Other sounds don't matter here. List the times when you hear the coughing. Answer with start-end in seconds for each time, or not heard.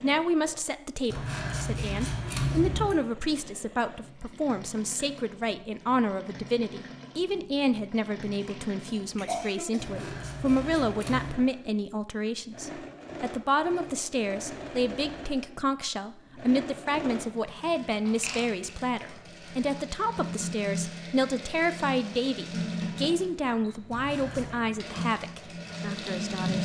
8.4-10.2.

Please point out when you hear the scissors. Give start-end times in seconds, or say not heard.
1.1-3.0, 9.8-11.4, 23.9-24.6.